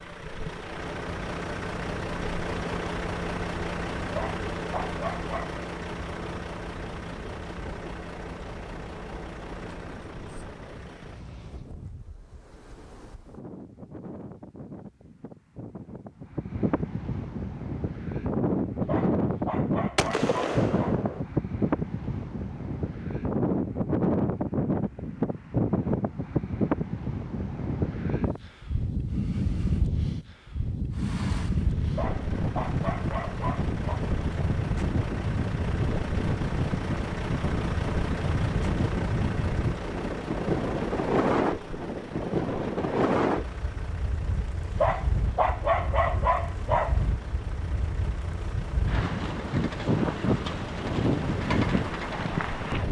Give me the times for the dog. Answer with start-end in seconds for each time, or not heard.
4.0-5.5, 18.8-20.9, 31.9-34.0, 44.7-47.1.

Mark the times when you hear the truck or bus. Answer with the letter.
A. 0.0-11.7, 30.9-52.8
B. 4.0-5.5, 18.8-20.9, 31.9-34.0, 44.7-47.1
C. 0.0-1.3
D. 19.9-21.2
A.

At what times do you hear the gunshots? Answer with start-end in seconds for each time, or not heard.
19.9-21.2.